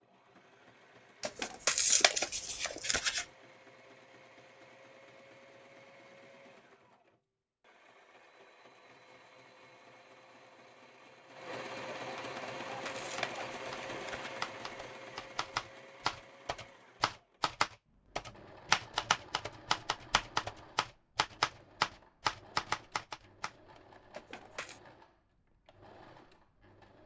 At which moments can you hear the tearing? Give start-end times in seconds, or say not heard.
1.2-3.2, 12.7-14.4, 24.1-24.8.